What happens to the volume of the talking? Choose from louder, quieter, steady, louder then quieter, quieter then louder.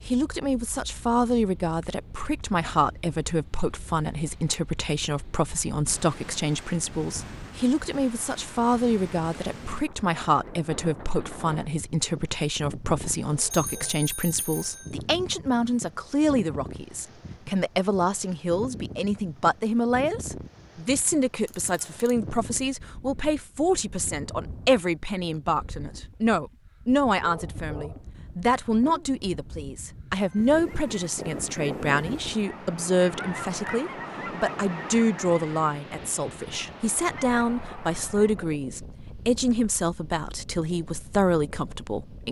steady.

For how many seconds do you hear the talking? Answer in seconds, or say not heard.
42 s.